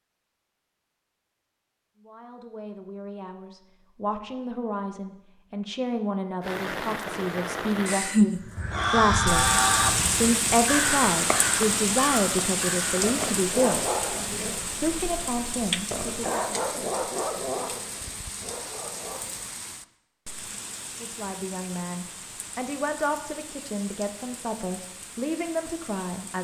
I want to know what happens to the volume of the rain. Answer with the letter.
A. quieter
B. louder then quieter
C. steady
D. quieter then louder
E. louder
A.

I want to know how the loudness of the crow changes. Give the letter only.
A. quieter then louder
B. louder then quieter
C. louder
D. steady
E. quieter
E.